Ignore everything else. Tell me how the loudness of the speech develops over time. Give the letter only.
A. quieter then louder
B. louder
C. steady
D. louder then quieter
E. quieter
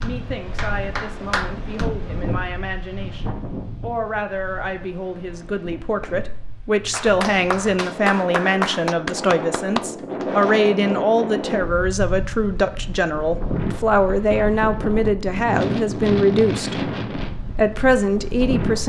B.